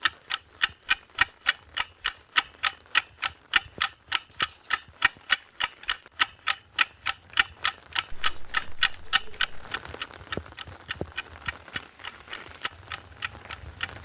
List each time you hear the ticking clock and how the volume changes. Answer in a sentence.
The ticking clock can be heard from 0.0 to 13.9 s, getting quieter.